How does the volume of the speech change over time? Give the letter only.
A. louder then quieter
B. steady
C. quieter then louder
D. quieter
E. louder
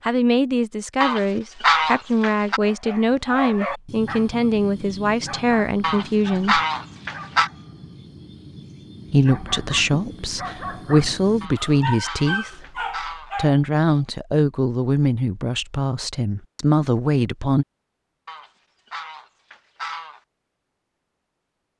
B.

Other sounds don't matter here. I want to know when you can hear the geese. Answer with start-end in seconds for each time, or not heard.
1.0-2.6, 5.8-7.5, 11.4-13.3, 18.2-20.2.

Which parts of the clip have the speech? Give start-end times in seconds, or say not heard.
0.0-6.6, 9.1-17.6.